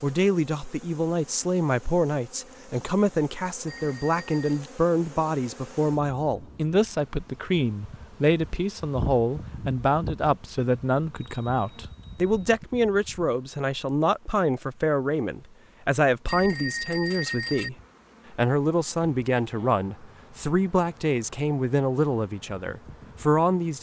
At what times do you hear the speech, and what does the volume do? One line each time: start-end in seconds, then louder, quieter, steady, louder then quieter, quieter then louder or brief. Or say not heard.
0.0-23.7 steady.